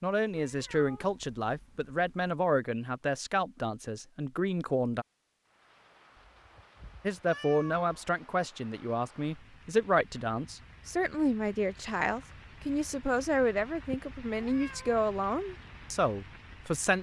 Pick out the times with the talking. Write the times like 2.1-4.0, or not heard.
0.0-5.0, 7.0-16.9.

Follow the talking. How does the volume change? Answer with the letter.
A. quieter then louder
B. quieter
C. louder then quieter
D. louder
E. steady
E.